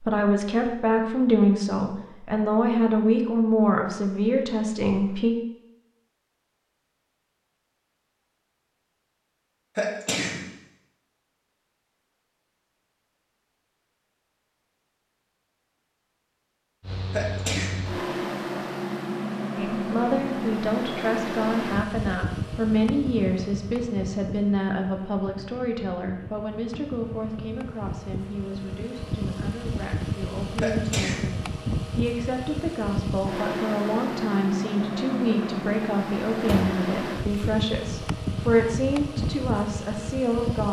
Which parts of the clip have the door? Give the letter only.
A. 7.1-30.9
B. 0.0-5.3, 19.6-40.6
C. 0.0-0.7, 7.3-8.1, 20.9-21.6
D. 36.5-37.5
D.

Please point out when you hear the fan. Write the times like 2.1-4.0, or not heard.
16.8-40.6.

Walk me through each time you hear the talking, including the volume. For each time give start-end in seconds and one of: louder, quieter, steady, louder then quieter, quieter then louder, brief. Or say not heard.
0.0-5.3 steady
19.6-40.6 quieter then louder.